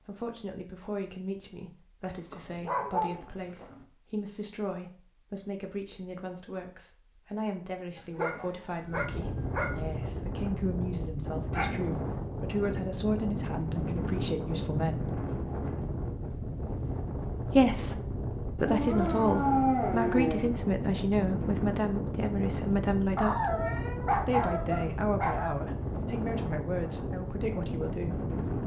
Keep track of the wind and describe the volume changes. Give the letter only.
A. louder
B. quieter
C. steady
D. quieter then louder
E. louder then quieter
C.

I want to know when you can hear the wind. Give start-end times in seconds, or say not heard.
8.8-28.6.